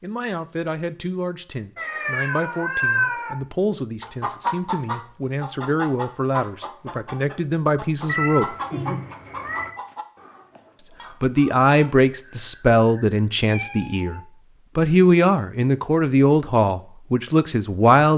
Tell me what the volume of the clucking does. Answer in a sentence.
The volume of the clucking goes down.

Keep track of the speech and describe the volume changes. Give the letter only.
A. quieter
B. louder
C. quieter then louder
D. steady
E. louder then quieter
B.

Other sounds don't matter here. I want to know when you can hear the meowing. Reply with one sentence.
The meowing can be heard from 1.8 to 3.4 s, from 8.1 to 9.7 s and from 12.2 to 14.2 s.